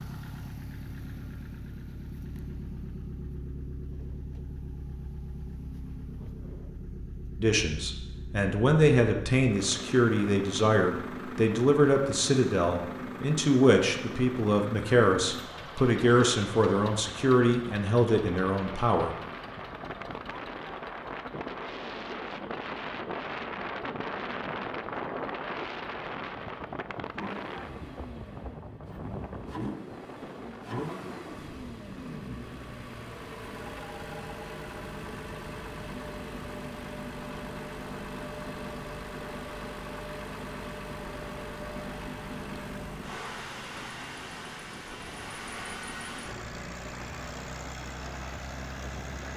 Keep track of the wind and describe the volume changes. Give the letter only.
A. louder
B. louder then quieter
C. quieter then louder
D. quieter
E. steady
D.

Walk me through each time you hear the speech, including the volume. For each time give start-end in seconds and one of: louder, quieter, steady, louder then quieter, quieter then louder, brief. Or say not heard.
7.4-19.1 steady.